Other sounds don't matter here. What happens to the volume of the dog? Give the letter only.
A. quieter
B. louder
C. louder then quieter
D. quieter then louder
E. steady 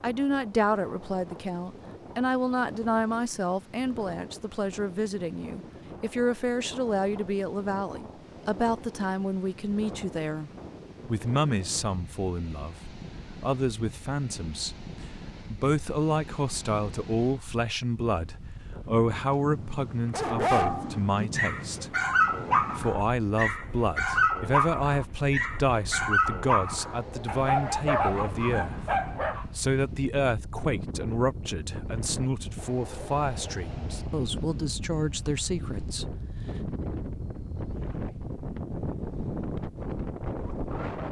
E.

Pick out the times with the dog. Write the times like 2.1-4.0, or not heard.
20.1-29.4.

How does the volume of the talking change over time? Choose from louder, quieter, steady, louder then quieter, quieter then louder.
steady.